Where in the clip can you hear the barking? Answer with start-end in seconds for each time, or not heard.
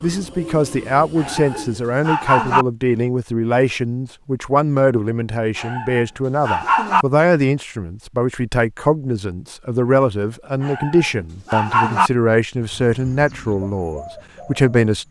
1.1-2.6, 5.5-7.0, 10.6-12.1.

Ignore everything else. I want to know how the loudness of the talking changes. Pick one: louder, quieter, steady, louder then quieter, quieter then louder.
steady.